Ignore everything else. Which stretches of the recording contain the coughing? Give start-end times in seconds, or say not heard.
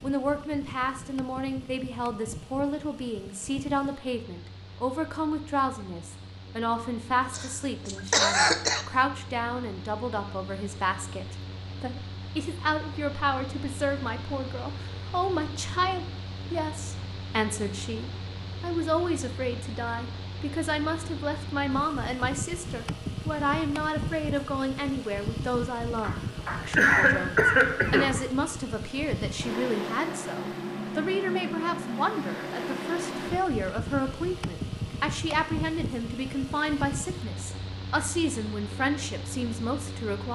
7.3-8.8, 26.0-28.2.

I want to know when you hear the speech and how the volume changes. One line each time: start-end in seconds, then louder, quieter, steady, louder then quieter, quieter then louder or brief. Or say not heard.
0.0-40.3 steady.